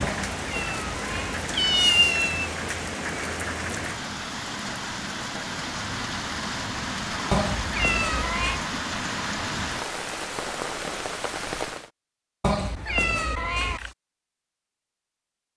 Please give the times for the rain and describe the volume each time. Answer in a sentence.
The rain can be heard from 0.0 to 11.9 s, at a steady volume.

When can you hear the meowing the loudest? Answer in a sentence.
The loudest moment of the meowing is at 2 seconds.